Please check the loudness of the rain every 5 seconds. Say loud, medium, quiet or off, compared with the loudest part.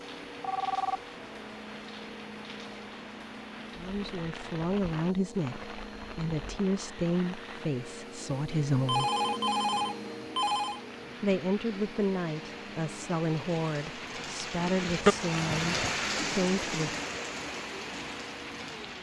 quiet, quiet, medium, loud.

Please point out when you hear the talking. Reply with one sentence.
The talking can be heard from 3.8 to 9.1 s and from 11.2 to 16.9 s.